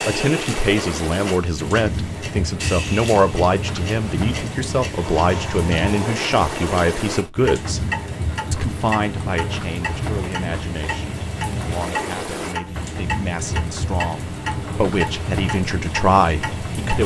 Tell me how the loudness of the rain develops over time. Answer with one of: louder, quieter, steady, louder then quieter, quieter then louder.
steady.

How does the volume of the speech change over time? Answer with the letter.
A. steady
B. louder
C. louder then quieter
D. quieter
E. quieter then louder
E.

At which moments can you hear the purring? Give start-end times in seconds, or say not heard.
not heard.